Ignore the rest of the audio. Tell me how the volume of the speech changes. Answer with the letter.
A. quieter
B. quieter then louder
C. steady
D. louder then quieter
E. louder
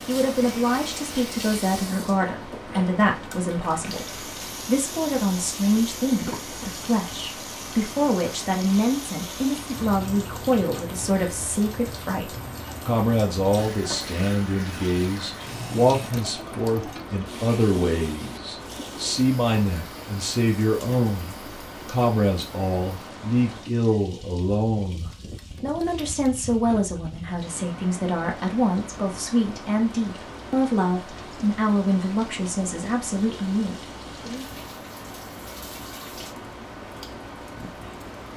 C.